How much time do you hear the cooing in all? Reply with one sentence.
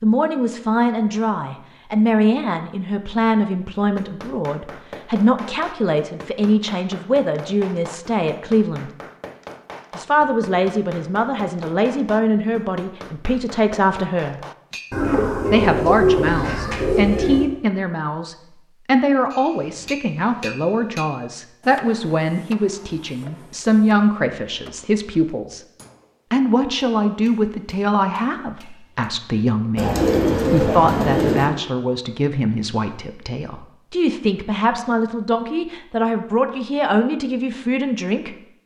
You can hear the cooing for 4 seconds altogether.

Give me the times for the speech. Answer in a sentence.
You can hear the speech from 0.0 to 8.9 s, from 9.9 to 14.4 s, from 15.5 to 25.6 s and from 26.3 to 38.4 s.